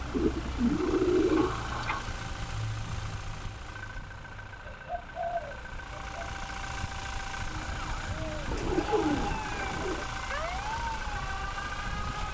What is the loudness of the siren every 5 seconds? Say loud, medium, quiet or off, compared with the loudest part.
off, loud, loud.